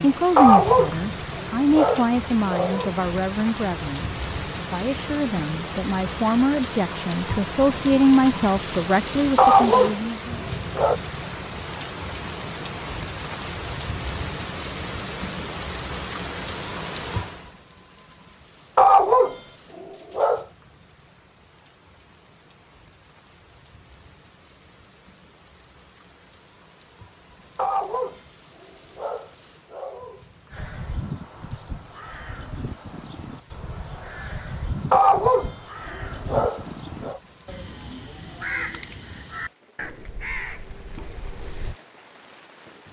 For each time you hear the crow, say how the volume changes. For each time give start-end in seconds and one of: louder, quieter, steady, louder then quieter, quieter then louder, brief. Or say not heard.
30.5-41.8 steady.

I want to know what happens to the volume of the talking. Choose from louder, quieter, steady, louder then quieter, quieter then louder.
quieter then louder.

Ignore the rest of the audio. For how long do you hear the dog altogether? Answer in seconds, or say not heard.
11 s.